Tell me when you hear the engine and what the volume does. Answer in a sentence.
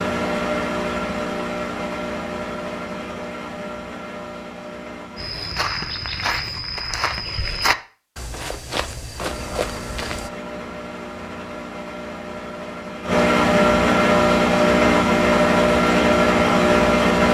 You can hear the engine from 0.0 to 5.3 s, getting quieter; and from 9.2 to 17.3 s, getting louder.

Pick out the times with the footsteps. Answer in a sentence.
You can hear the footsteps from 5.2 to 10.3 s.